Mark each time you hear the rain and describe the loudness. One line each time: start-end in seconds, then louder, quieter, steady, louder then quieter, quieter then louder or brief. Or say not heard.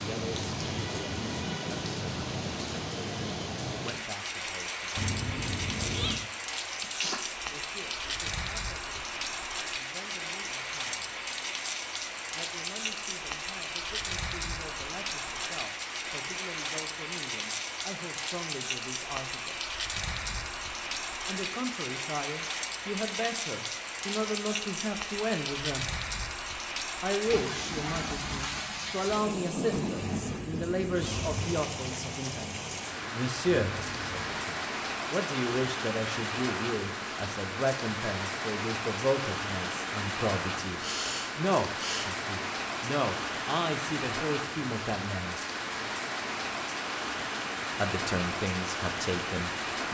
0.0-49.8 steady.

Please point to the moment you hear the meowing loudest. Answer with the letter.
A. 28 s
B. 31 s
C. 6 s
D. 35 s
C.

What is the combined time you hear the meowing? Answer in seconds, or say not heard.
4 s.